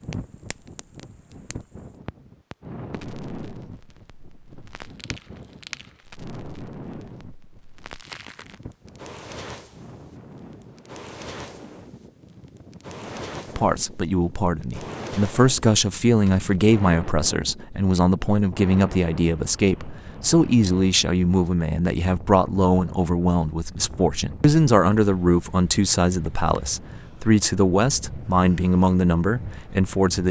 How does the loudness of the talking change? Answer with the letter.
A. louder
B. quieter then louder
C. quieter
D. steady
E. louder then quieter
D.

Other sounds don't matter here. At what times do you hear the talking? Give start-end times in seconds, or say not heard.
13.6-30.2.